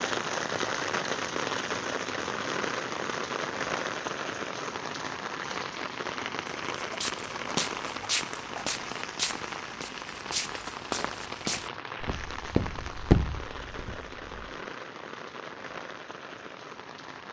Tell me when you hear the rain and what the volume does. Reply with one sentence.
You can hear the rain from 0.0 to 17.2 s, getting quieter.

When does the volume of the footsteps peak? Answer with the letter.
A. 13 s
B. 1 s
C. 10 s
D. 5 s
A.